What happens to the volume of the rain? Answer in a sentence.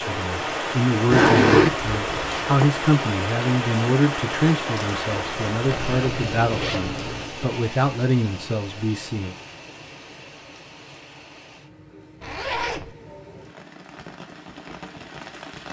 The volume of the rain goes down.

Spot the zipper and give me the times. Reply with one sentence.
The zipper can be heard from 1.1 to 2.6 s, from 5.7 to 7.3 s and from 12.2 to 12.9 s.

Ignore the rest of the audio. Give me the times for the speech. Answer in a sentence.
You can hear the speech from 0.0 to 9.3 s.